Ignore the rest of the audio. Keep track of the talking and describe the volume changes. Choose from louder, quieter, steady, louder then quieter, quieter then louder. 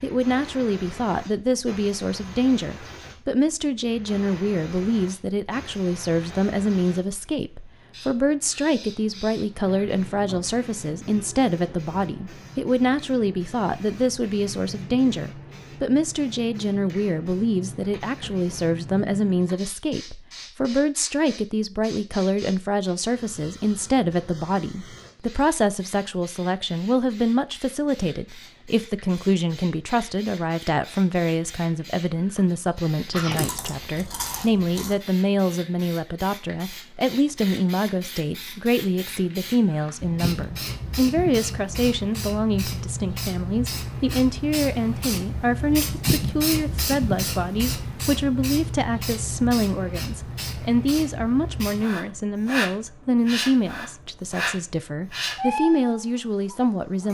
steady.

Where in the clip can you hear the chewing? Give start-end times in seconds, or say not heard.
33.1-35.0.